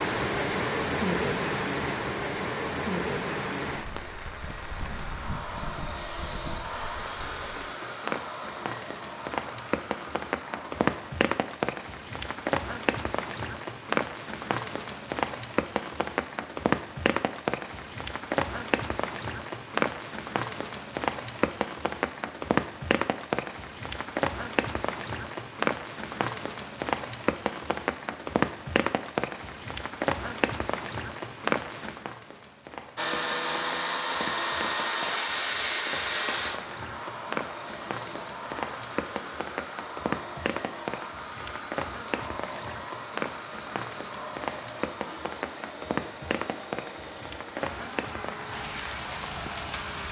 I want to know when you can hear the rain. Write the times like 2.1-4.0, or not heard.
0.0-50.0.